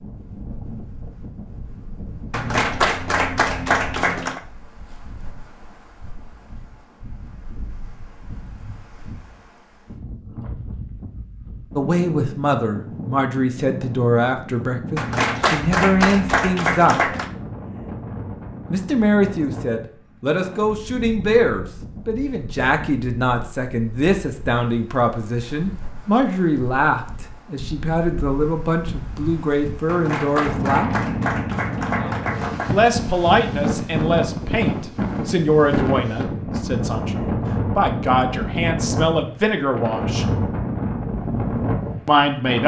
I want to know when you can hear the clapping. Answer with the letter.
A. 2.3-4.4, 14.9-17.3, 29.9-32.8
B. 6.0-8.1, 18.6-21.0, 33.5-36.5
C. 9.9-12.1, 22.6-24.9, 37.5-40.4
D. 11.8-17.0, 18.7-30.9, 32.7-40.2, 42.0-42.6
A.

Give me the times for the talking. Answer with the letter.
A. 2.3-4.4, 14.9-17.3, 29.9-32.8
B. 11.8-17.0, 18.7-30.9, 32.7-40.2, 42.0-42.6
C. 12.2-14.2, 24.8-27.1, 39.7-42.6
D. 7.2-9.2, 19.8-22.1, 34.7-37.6
B.